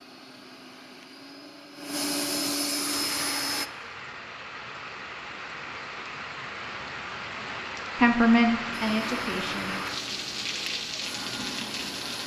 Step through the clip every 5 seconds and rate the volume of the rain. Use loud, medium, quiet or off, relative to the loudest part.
medium, loud, loud.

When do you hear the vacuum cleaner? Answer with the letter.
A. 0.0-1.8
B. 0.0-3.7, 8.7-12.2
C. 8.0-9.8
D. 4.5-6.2
B.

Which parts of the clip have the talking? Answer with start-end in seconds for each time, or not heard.
8.0-9.8.